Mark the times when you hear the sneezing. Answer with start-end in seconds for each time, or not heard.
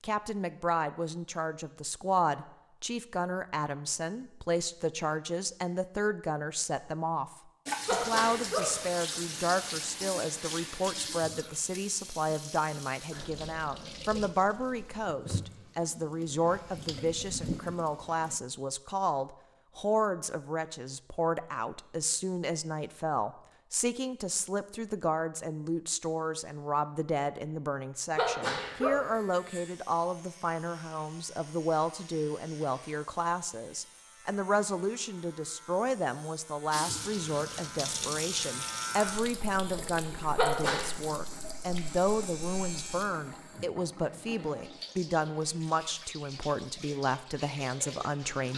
7.8-8.8, 28.1-29.1, 40.4-40.9.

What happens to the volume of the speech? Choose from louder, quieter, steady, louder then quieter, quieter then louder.
steady.